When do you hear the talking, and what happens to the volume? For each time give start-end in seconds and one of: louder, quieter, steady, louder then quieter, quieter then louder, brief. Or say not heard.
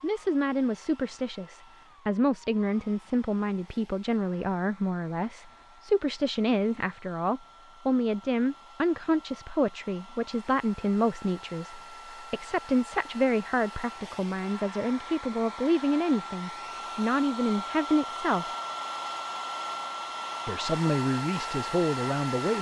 0.0-18.4 steady
20.4-22.5 brief.